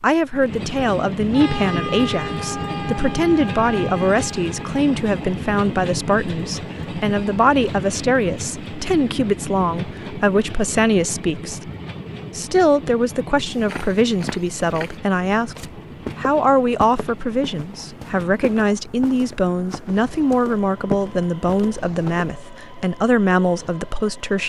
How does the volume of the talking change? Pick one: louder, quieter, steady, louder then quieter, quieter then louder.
steady.